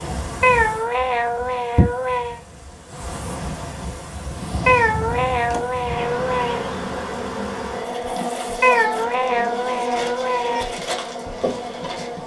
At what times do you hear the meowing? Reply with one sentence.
The meowing can be heard from 0.4 to 2.4 s, from 4.7 to 6.6 s and from 8.6 to 10.7 s.